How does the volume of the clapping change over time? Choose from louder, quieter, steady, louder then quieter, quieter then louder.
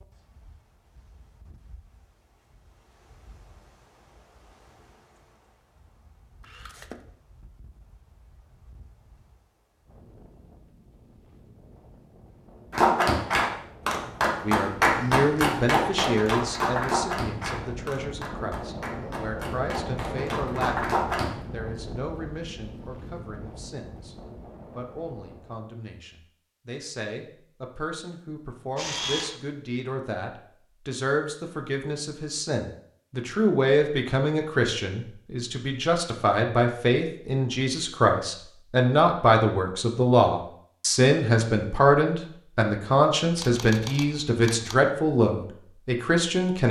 quieter then louder.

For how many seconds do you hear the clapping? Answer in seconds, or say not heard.
9 s.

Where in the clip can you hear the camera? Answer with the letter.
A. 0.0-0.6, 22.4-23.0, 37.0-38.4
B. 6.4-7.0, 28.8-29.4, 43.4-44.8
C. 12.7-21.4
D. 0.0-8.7
B.